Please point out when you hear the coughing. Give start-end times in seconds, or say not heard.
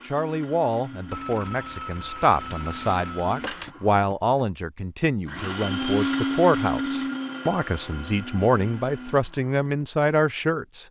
not heard.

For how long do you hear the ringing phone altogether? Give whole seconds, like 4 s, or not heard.
3 s.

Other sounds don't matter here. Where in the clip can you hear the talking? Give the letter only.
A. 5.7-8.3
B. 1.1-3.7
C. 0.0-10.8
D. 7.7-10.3
C.